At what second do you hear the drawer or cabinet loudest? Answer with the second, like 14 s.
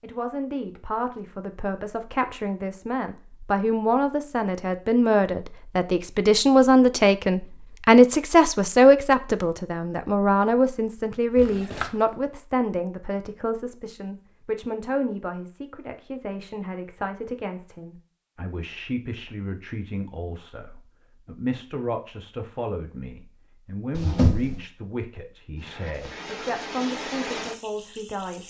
24 s.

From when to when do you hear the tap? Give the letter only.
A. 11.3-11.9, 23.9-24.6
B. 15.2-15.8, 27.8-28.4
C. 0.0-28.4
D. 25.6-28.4
D.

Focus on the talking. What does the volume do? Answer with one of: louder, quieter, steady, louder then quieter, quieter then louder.
louder then quieter.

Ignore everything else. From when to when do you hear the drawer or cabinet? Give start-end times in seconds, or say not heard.
11.3-11.9, 23.9-24.6.